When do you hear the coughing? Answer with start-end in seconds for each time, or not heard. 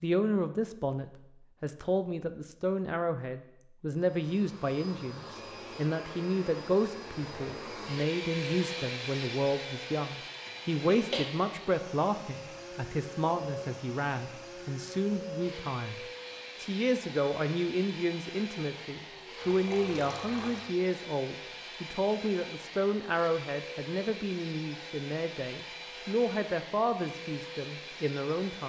10.4-11.2.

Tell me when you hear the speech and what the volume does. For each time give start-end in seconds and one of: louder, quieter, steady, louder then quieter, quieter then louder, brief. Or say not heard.
0.0-28.6 steady.